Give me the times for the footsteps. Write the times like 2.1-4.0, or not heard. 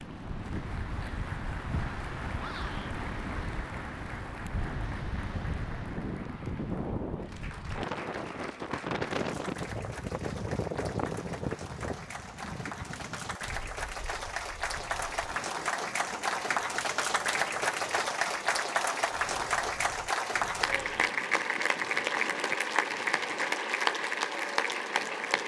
not heard.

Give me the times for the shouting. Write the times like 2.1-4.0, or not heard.
2.4-3.0.